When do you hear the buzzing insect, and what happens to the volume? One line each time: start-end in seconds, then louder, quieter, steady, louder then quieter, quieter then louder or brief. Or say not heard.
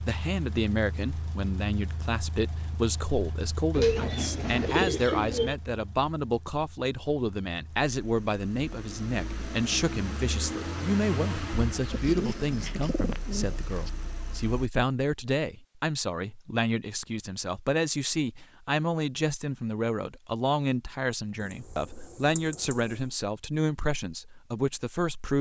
not heard.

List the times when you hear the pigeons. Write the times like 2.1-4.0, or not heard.
3.7-5.5, 11.9-13.9, 21.4-23.1.